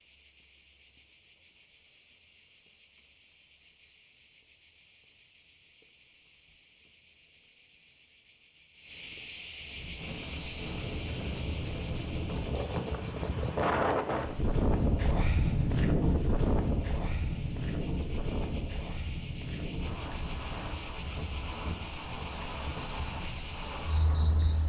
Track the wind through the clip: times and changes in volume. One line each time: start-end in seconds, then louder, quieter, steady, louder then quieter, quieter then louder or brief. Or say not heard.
9.6-24.6 louder then quieter.